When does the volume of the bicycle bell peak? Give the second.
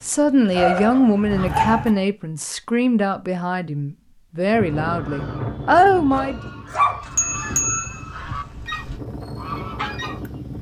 8 s.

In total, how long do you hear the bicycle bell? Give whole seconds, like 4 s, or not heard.
3 s.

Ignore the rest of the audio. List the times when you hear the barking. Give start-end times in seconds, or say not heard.
0.5-2.0, 6.1-7.6.